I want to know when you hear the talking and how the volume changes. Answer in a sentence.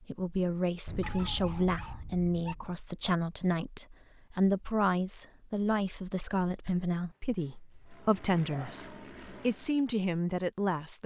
You can hear the talking from 0.0 to 11.0 s, at a steady volume.